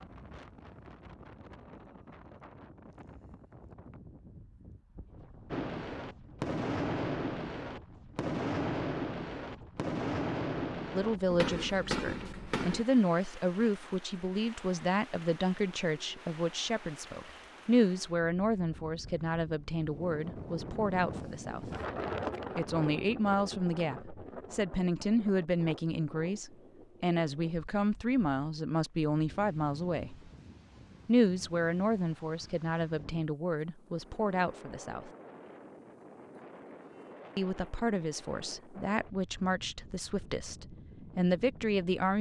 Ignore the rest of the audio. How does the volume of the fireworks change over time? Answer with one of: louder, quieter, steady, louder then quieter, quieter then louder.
steady.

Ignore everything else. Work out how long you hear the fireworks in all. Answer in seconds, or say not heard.
7 s.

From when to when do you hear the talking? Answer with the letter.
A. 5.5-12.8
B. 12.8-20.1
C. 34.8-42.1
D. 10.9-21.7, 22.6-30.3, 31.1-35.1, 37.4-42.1
D.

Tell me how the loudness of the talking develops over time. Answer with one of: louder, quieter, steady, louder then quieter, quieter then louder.
steady.